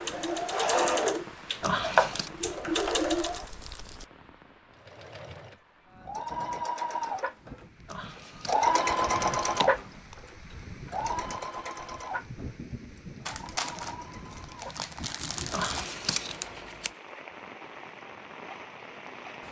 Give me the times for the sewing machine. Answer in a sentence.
The sewing machine can be heard from 0.0 to 3.5 s and from 4.7 to 17.1 s.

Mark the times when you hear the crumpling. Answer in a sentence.
The crumpling can be heard from 2.8 to 4.1 s and from 13.2 to 15.9 s.